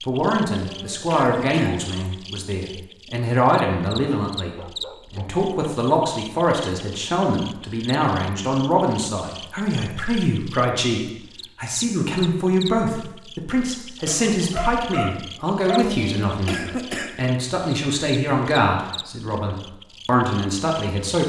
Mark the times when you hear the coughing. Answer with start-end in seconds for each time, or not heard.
0.6-1.9, 15.8-17.2.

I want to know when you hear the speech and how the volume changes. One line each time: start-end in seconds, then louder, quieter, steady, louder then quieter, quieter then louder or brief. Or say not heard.
0.1-21.2 steady.